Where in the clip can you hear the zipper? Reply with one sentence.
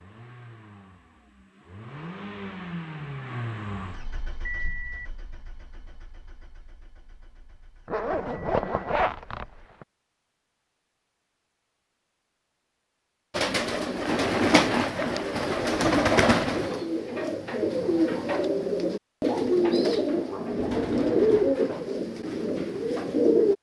The zipper can be heard from 7.8 to 9.8 s and from 14.0 to 15.4 s.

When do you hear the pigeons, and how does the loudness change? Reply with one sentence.
The pigeons can be heard from 13.3 to 23.5 s, at a steady volume.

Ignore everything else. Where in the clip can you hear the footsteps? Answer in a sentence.
You can't hear the footsteps here.